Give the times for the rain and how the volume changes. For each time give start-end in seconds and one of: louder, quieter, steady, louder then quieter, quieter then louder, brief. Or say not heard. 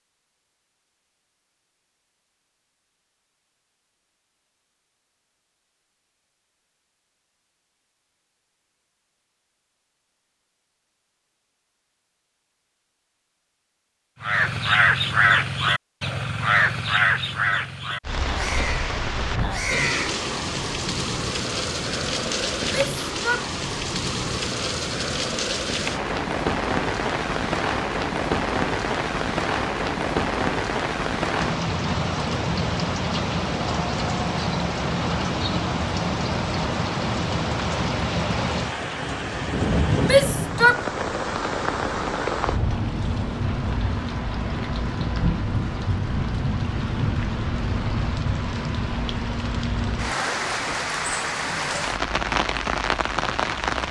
18.0-53.8 steady.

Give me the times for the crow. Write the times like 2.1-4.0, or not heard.
14.2-20.2.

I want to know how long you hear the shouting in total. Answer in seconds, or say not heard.
2 s.